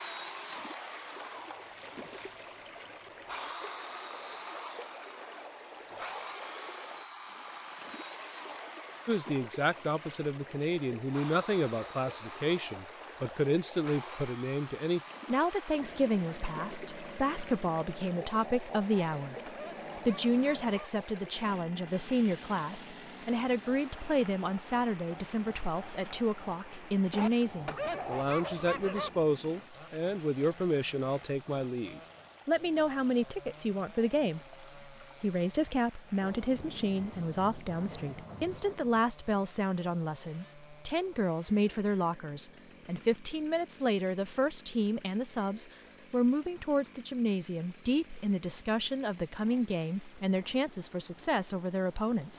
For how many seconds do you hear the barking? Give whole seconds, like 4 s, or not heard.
4 s.